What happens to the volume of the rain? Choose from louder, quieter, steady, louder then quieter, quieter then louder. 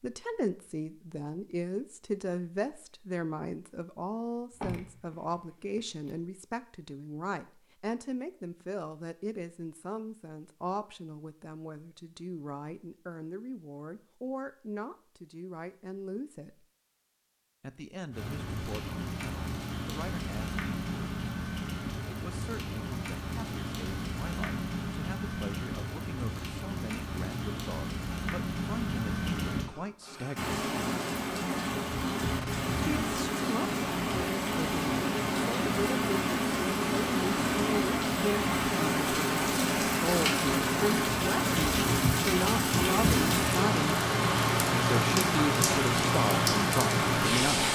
louder.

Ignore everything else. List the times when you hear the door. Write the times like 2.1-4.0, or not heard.
4.5-6.2.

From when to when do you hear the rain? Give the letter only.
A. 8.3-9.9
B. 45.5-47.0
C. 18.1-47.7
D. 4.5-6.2
C.